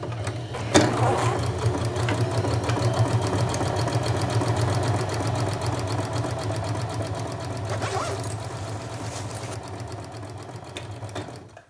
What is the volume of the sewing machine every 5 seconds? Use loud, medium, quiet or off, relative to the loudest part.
loud, medium, quiet.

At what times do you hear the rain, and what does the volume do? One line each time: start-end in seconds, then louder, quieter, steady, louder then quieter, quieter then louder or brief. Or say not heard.
not heard.